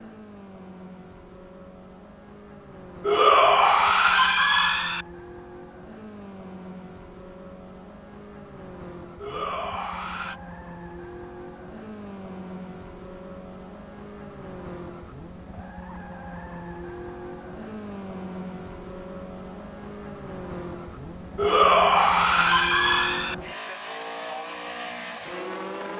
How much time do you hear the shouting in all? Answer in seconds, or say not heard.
5 s.